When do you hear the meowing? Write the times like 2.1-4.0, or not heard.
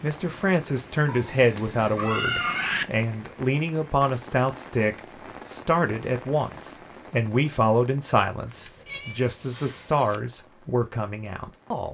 1.1-2.9, 8.5-10.2.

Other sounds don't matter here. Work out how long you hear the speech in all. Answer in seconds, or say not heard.
12 s.